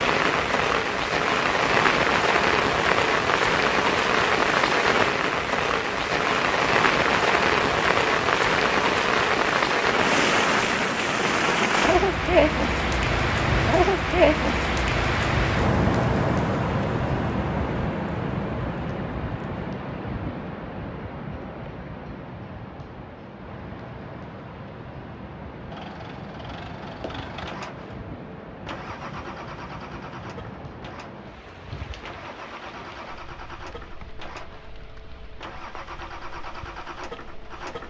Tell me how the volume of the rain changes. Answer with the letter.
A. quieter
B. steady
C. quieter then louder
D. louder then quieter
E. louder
A.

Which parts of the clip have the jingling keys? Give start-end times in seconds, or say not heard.
not heard.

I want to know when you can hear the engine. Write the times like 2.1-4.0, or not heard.
25.7-37.8.